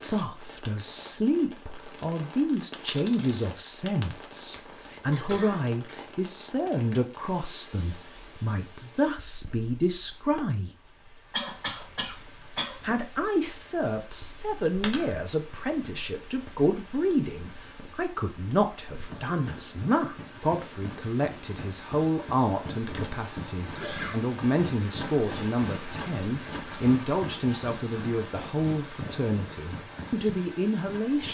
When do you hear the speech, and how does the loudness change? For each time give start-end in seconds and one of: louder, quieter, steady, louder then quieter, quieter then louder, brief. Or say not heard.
0.0-10.7 steady
12.8-31.2 steady.